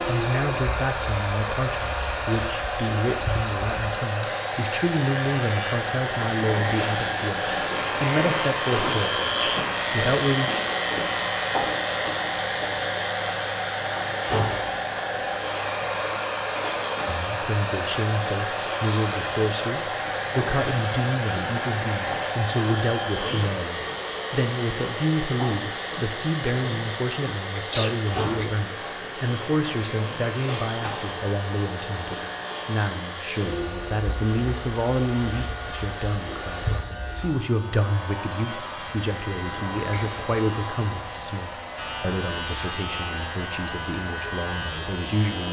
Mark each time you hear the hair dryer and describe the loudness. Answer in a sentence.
You can hear the hair dryer from 0.0 to 45.4 s, getting quieter.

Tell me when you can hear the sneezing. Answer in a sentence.
You can hear the sneezing from 27.6 to 28.6 s.